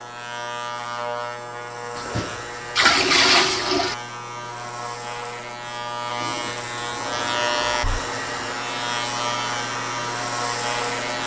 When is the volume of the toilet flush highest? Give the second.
3 s.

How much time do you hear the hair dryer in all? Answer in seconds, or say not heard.
4 s.